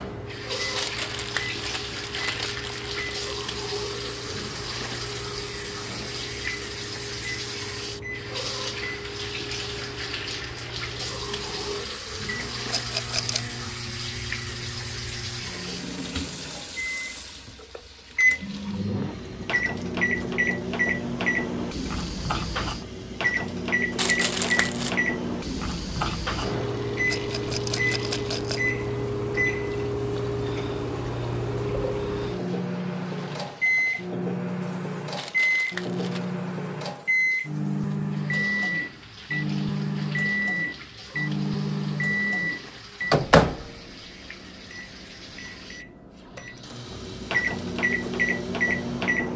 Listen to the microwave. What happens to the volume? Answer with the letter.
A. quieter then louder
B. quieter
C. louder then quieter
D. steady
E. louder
E.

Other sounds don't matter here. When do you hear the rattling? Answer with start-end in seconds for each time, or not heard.
12.7-13.4, 27.1-28.7.